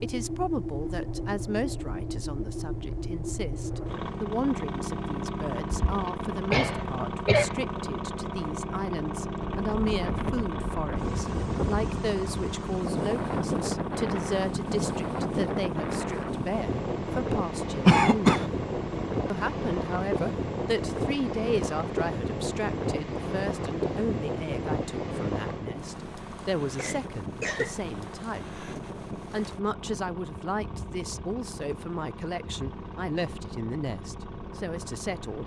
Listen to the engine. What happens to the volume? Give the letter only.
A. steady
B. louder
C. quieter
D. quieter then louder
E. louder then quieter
C.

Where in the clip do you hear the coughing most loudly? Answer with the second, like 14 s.
18 s.